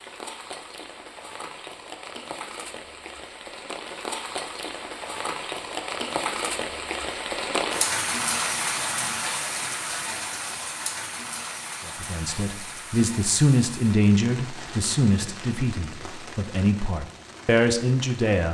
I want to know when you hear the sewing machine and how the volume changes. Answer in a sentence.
You can't hear the sewing machine here.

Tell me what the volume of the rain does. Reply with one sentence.
The volume of the rain goes up, then down.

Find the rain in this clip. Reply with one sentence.
You can hear the rain from 0.0 to 18.5 s.